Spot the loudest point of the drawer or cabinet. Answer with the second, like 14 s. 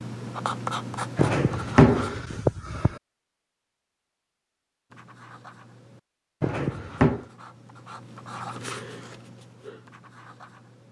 2 s.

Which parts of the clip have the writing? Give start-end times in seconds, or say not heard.
0.0-2.1, 4.9-10.8.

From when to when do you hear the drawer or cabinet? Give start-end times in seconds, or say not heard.
1.1-3.0, 6.4-7.2.